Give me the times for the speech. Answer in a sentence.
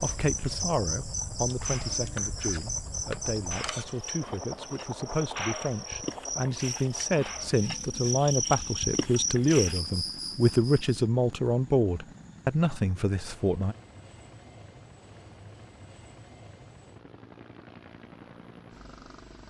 You can hear the speech from 0.0 to 13.8 s.